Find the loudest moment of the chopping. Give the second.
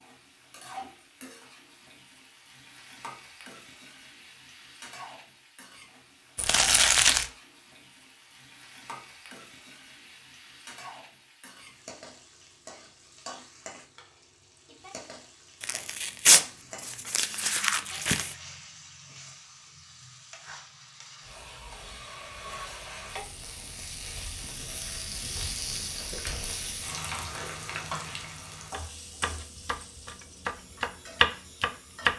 31 s.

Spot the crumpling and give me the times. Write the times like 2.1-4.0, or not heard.
6.3-7.3, 15.6-18.4, 25.4-27.9.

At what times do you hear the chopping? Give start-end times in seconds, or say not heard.
28.7-32.1.